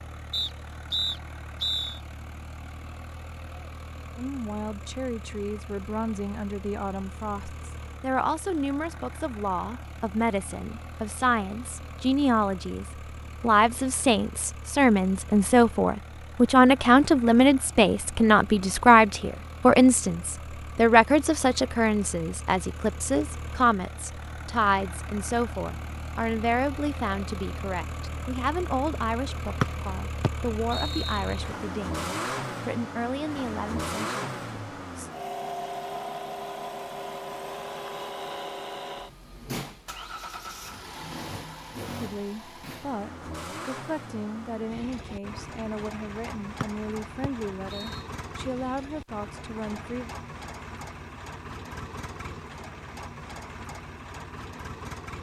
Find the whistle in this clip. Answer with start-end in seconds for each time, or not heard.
0.3-2.0, 29.6-31.2, 46.6-48.0.